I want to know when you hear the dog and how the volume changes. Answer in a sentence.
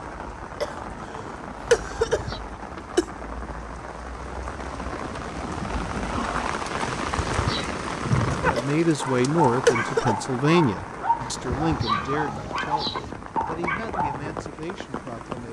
You can hear the dog from 8.4 to 14.4 s, at a steady volume.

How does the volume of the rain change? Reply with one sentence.
The volume of the rain goes up, then down.